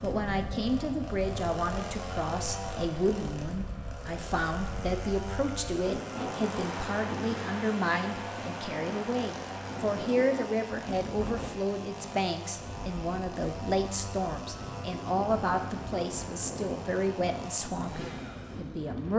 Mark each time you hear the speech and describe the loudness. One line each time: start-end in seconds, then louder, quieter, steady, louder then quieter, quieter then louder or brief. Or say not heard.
0.0-19.1 steady.